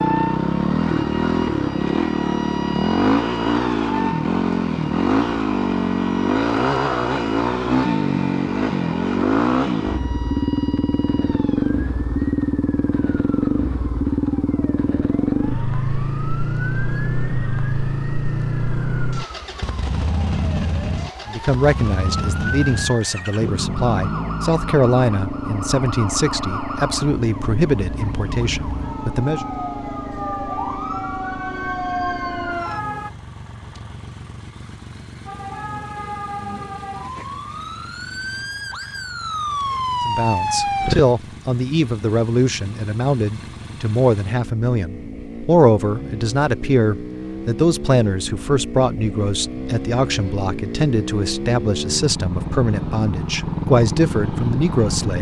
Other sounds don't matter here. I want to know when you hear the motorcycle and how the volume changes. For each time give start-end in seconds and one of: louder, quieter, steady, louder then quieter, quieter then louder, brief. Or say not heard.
0.0-55.1 quieter then louder.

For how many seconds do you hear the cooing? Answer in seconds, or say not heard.
not heard.